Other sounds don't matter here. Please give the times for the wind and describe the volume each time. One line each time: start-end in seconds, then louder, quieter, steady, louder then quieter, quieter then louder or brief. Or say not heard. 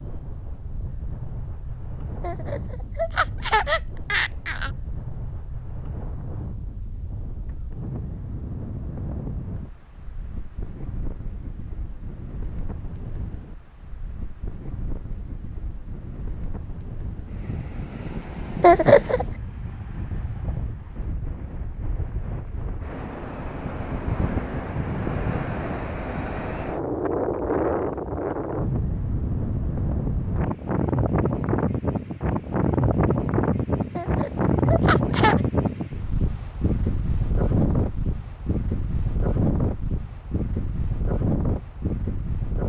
0.0-42.6 louder.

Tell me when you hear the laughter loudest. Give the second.
19 s.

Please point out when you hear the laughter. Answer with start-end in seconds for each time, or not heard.
2.2-4.7, 18.6-19.2, 34.0-35.4.